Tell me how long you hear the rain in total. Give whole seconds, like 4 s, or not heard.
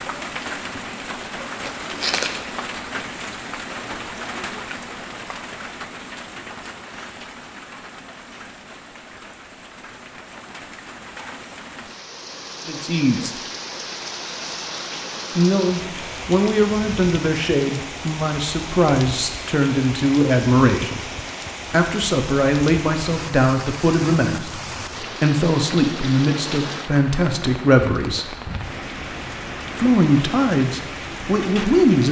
32 s.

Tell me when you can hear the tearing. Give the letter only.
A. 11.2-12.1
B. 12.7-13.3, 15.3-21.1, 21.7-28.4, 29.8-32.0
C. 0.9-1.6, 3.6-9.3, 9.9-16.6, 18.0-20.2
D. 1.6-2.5
D.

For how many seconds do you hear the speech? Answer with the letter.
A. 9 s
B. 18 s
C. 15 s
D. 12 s
C.